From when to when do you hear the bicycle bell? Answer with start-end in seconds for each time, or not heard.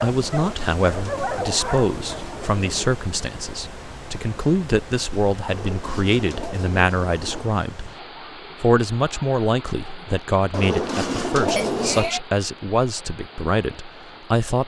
11.6-12.2.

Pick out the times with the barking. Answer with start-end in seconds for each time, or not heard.
0.0-2.2.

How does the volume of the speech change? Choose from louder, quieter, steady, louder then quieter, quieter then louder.
steady.